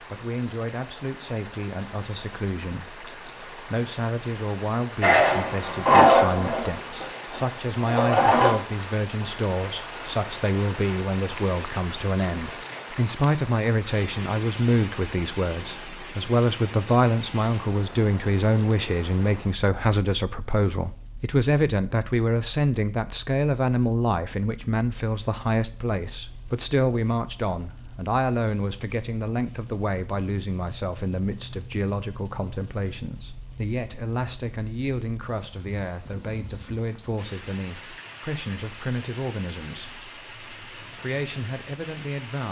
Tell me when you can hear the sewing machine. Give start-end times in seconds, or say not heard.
5.0-8.5.